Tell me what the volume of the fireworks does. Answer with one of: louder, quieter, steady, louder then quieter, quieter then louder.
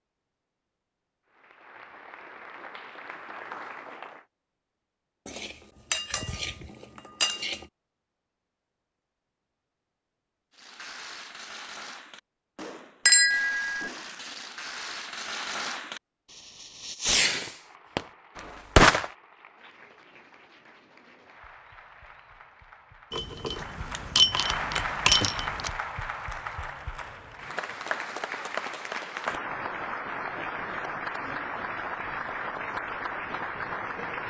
louder.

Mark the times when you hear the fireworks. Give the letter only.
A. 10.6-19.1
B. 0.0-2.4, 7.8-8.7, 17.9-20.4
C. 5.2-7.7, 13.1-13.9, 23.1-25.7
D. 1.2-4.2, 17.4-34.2
A.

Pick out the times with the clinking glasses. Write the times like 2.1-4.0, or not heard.
5.2-7.7, 13.1-13.9, 23.1-25.7.